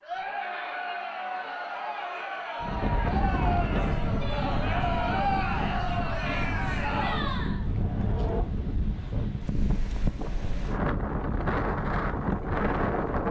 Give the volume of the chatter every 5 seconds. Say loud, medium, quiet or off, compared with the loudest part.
loud, loud, off.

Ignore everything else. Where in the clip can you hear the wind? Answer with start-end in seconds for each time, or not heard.
2.6-13.2.